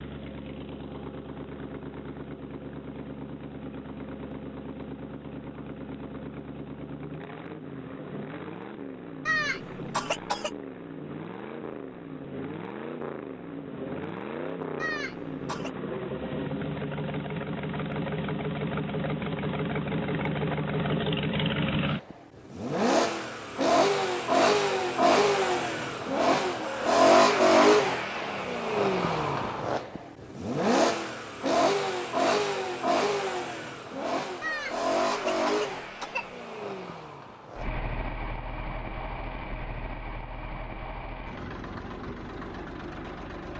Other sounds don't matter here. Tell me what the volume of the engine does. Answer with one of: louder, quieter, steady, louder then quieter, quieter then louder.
louder then quieter.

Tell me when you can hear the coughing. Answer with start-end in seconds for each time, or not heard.
9.2-10.5, 14.8-15.7, 34.4-36.2.